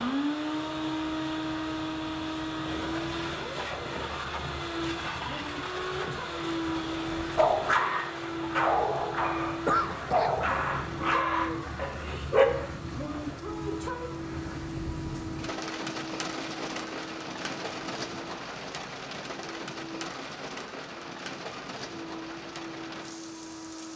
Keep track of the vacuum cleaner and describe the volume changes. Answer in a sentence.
The volume of the vacuum cleaner goes down.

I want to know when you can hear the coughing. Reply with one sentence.
You can hear the coughing from 9.7 to 10.3 s.